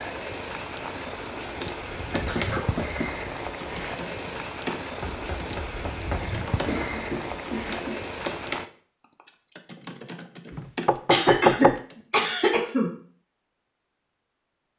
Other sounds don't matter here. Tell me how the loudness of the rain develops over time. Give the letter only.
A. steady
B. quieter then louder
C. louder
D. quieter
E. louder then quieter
A.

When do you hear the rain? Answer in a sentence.
You can hear the rain from 0.0 to 8.7 s.